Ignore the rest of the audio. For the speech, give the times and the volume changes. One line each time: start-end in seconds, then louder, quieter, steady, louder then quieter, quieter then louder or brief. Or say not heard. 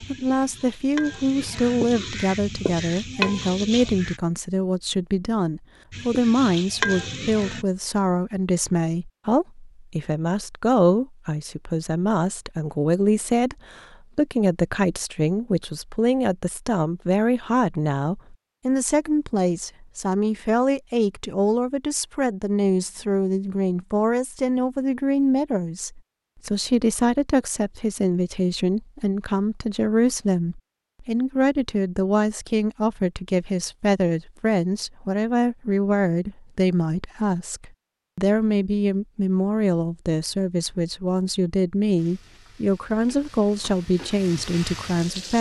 0.0-45.3 steady.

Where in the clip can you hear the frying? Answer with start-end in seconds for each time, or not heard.
0.0-4.2, 5.9-7.7, 42.0-45.3.